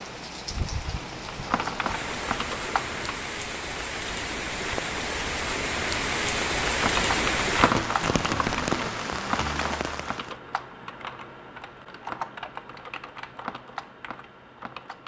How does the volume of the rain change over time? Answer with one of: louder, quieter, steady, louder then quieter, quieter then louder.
louder.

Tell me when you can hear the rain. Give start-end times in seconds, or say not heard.
0.0-10.3.